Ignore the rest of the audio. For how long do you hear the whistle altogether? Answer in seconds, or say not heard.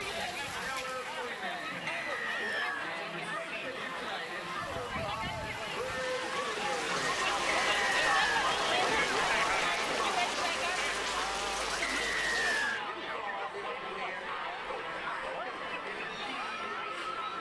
3 s.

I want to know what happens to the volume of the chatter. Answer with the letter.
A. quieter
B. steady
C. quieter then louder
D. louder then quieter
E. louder
D.